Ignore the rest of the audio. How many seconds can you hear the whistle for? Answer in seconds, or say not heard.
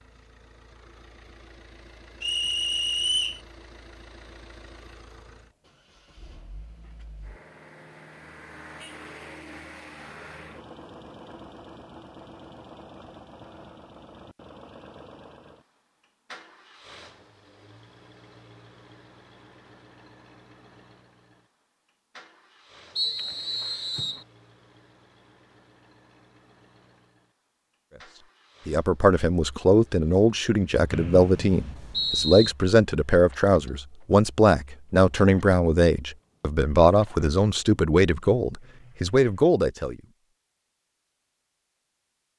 4 s.